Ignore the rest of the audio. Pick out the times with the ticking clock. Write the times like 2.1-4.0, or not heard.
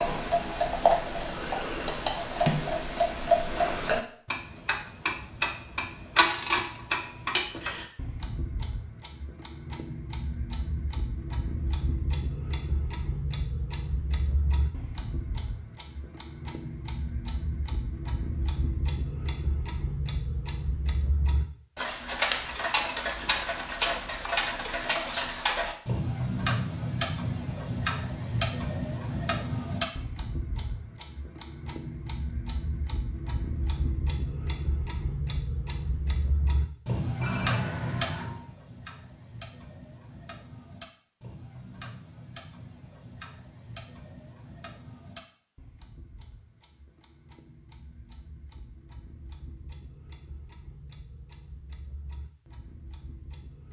0.0-53.6.